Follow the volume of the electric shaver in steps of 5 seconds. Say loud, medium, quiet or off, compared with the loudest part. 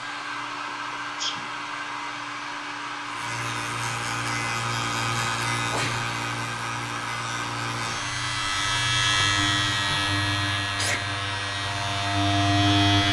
medium, loud, loud.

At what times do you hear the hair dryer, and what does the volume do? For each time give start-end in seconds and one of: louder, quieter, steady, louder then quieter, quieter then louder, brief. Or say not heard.
0.0-13.0 steady.